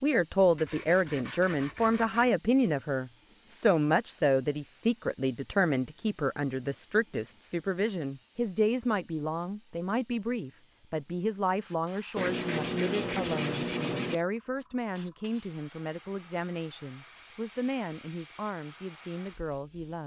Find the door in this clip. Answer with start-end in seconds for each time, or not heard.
not heard.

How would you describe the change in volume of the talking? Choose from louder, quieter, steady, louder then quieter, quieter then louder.
quieter.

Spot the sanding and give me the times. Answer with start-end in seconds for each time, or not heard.
0.4-2.3, 12.2-14.2.